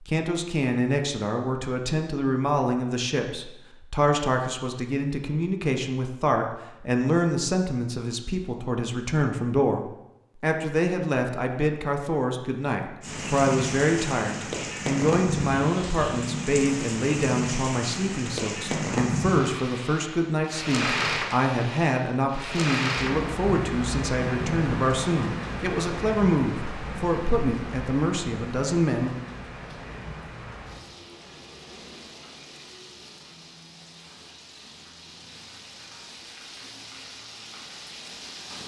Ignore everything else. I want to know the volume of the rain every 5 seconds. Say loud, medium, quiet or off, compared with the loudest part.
off, off, loud, loud, loud, medium, quiet, quiet.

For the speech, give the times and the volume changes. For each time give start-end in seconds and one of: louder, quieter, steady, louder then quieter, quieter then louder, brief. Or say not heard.
0.0-29.1 steady.